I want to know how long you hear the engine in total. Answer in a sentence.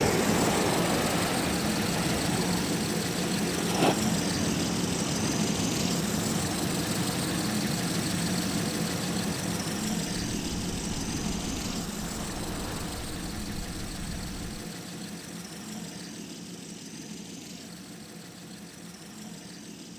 You can hear the engine for 20 seconds altogether.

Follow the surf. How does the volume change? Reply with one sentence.
The volume of the surf goes down.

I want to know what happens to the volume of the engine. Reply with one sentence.
The loudness of the engine goes down.